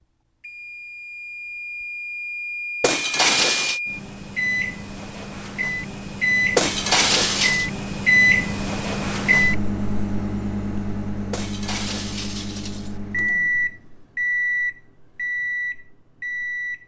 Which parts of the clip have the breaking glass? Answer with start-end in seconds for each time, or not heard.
2.8-3.8, 6.5-7.7, 11.3-12.9.